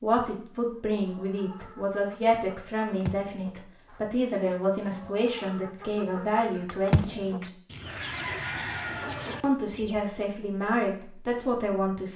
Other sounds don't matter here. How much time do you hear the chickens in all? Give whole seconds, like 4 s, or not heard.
9 s.